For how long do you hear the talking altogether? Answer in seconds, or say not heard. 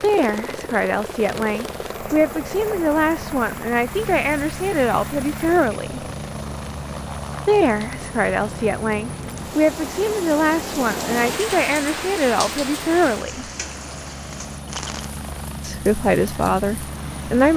14 s.